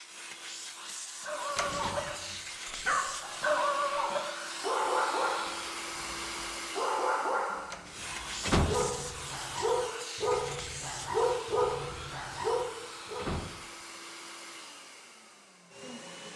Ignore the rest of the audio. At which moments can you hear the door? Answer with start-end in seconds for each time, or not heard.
1.6-2.1, 7.7-9.1, 12.7-13.5.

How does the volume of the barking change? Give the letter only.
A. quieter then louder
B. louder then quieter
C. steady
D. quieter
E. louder
C.